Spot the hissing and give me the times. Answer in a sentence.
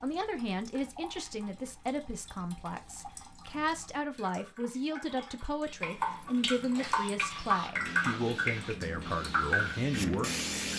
You can hear the hissing from 6.7 to 10.7 s.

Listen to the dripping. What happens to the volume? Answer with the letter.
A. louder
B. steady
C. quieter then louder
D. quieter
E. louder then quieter
A.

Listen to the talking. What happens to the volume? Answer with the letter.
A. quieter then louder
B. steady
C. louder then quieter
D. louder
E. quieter
B.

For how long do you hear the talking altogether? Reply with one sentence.
You can hear the talking for 11 seconds altogether.